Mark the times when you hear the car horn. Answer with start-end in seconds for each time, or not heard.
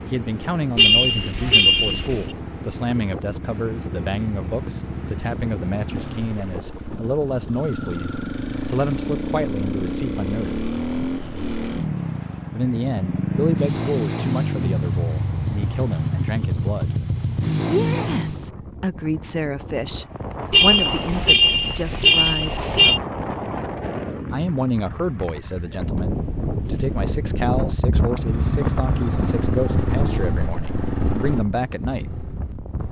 0.8-2.3, 20.5-23.0.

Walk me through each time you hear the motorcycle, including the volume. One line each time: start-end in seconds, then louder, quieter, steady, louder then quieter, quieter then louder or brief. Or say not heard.
0.0-18.5 louder
27.9-32.8 quieter.